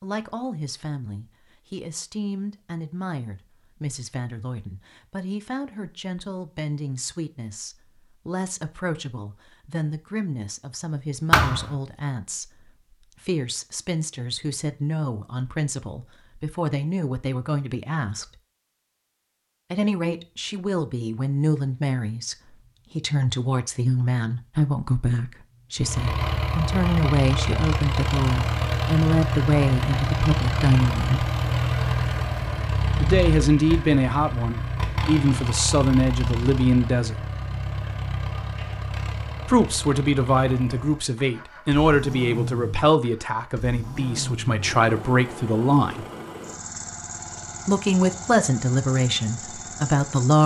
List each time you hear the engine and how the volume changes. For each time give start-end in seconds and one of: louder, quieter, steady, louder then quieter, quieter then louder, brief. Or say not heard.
25.8-50.4 quieter.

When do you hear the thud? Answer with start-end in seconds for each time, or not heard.
11.3-11.8.